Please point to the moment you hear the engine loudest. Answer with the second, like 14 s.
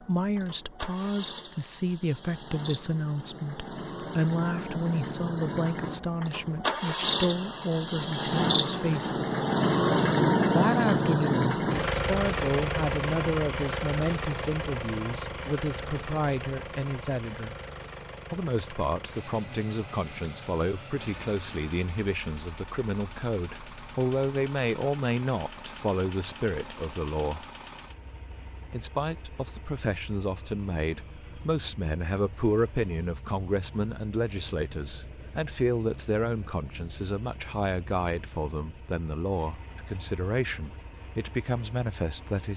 10 s.